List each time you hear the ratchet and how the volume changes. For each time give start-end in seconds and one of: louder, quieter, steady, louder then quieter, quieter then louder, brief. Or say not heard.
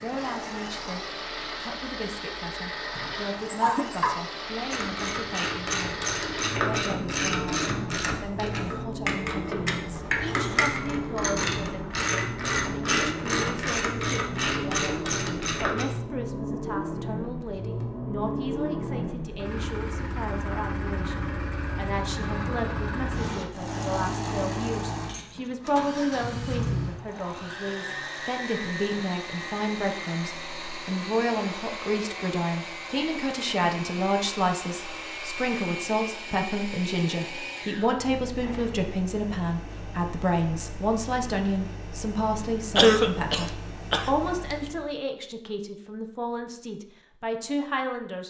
4.7-15.8 steady.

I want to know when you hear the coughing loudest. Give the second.
43 s.